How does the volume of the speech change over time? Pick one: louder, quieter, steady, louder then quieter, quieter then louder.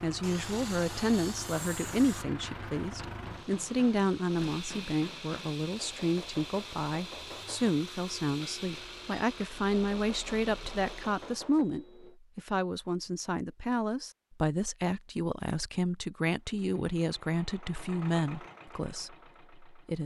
steady.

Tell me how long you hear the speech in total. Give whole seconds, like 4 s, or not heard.
20 s.